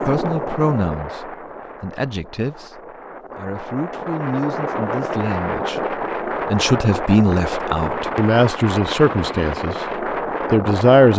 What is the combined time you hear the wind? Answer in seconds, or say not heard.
11 s.